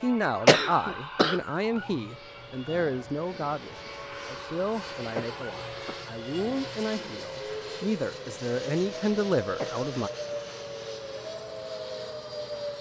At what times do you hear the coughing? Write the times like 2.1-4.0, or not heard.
0.5-1.4, 5.2-6.0, 9.6-10.3.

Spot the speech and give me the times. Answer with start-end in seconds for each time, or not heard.
0.0-10.1.